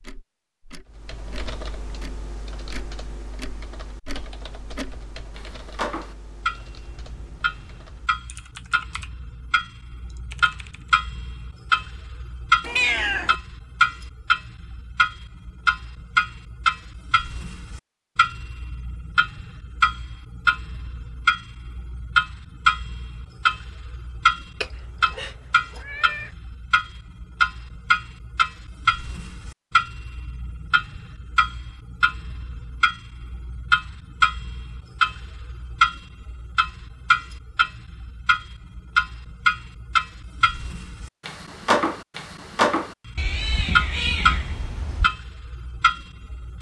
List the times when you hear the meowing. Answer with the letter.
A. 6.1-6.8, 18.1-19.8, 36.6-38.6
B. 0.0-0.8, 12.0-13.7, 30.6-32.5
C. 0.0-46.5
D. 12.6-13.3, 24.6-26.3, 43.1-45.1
D.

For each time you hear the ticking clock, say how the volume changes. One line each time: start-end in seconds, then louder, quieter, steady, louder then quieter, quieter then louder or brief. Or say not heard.
0.0-46.5 louder.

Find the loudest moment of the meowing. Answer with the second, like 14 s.
13 s.